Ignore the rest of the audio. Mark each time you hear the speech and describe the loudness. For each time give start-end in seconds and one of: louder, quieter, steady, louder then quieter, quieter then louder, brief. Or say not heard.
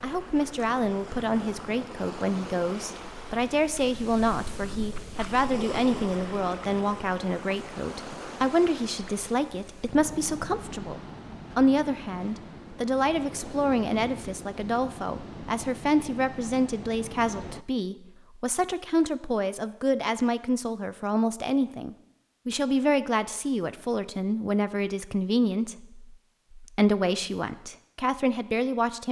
0.0-29.0 steady.